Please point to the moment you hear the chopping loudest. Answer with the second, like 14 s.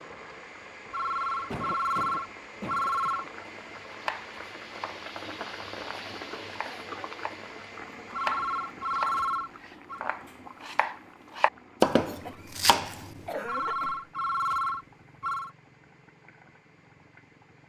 12 s.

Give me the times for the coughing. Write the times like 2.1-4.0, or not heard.
1.5-3.3, 6.3-7.1, 12.2-14.1.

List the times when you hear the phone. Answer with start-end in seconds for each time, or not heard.
0.9-3.5, 8.1-10.0, 13.4-15.5.